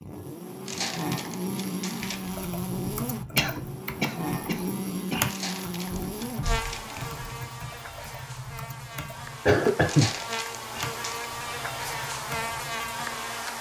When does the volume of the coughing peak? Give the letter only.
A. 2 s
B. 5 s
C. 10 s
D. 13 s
C.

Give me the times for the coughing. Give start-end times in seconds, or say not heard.
3.4-5.2, 9.4-10.1.